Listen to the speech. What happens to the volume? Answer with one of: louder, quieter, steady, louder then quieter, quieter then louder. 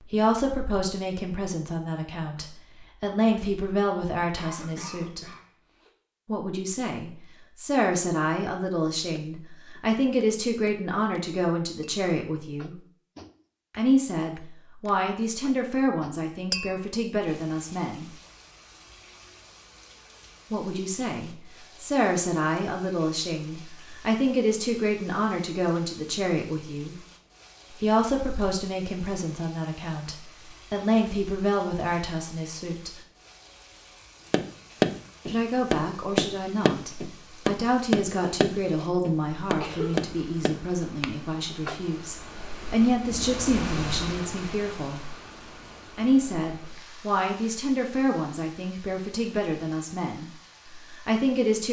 steady.